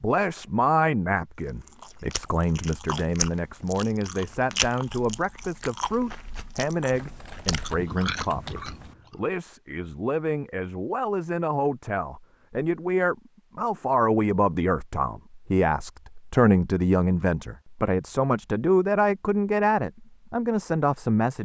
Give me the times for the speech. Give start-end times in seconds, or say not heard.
0.0-21.4.